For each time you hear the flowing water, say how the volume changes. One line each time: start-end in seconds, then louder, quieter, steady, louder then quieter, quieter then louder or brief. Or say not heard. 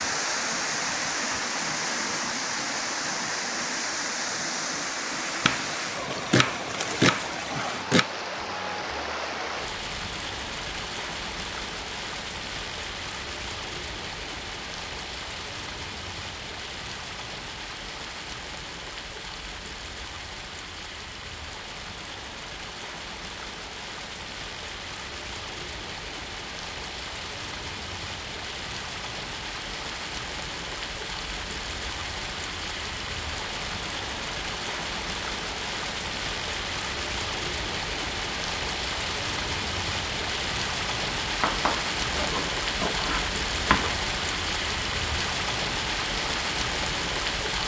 0.0-47.6 quieter then louder.